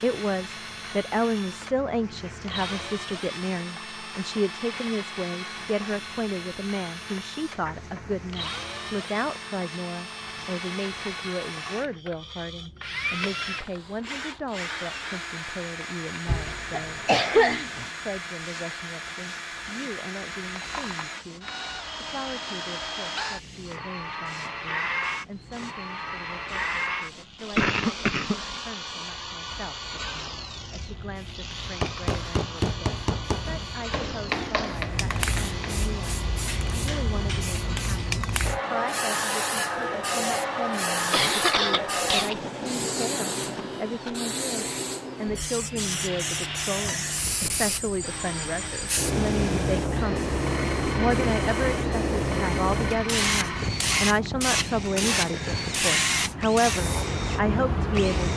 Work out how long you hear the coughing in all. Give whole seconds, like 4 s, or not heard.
4 s.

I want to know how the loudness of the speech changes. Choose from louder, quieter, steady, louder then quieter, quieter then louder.
quieter then louder.